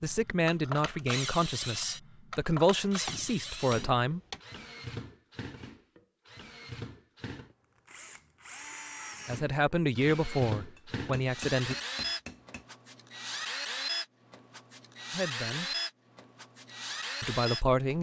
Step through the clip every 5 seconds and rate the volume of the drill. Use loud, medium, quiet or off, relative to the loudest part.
loud, medium, loud, loud.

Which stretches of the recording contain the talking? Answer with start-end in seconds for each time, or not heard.
0.0-4.2, 9.2-11.8, 15.1-15.7, 17.2-17.9.